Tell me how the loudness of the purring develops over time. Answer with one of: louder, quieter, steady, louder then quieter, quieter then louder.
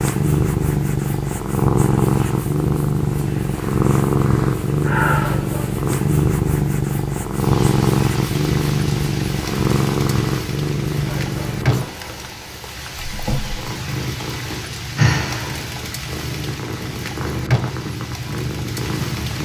quieter.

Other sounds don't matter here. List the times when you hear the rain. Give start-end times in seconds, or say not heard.
7.3-19.4.